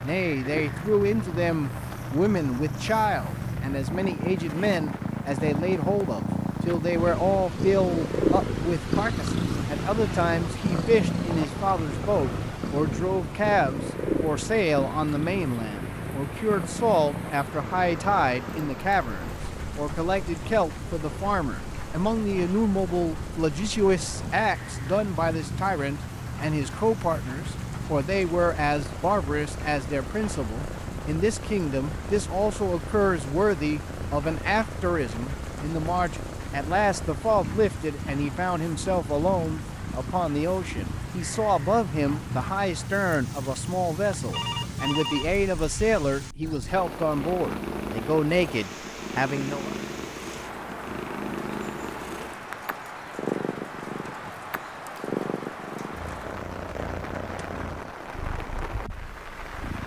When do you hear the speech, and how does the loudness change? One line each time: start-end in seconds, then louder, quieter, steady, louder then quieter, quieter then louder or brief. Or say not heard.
0.0-49.8 steady.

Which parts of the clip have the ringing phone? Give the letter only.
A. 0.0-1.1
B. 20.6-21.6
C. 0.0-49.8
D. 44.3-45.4
D.